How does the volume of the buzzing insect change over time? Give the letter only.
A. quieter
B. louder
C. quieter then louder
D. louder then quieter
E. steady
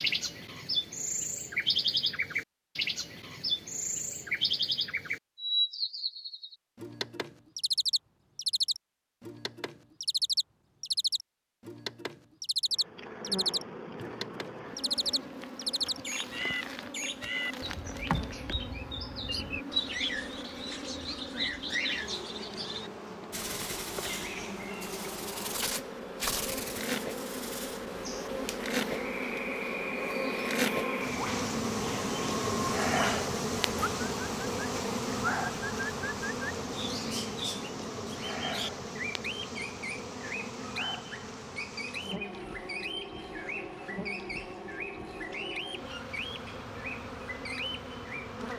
D.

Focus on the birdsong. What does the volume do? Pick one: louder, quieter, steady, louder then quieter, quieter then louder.
quieter.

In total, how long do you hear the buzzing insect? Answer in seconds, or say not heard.
36 s.